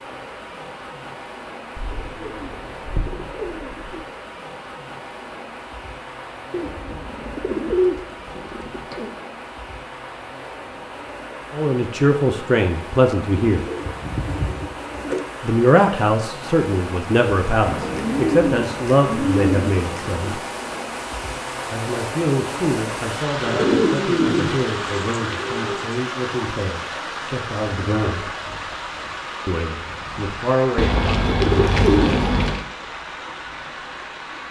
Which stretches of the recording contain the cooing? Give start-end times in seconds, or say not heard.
1.8-4.0, 6.5-9.1, 13.5-15.3, 17.6-20.4, 23.4-25.9, 30.8-32.6.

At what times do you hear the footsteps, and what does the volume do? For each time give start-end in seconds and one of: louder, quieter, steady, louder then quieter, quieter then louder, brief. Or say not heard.
not heard.